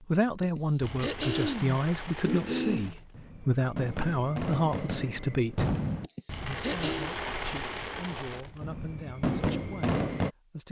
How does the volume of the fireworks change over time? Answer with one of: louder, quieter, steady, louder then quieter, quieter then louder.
louder.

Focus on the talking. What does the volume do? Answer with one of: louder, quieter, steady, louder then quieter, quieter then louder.
quieter.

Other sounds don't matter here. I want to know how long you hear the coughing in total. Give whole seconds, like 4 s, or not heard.
4 s.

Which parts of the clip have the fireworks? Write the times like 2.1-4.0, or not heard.
0.8-10.3.